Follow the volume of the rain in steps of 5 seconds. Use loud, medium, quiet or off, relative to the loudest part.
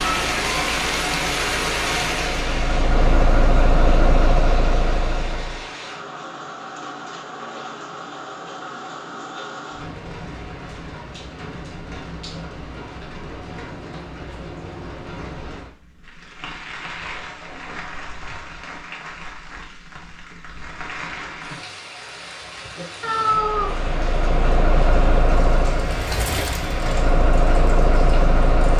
loud, medium, medium, medium, medium, medium.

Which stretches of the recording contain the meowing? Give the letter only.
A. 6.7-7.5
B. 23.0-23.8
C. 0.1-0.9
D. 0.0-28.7
B.